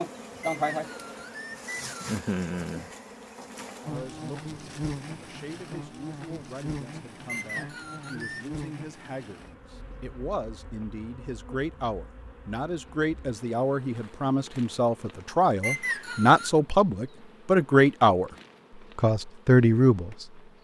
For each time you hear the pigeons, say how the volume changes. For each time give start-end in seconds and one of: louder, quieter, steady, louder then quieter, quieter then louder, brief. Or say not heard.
not heard.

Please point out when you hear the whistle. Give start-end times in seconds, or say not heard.
0.4-2.0, 7.2-8.4, 15.6-16.5.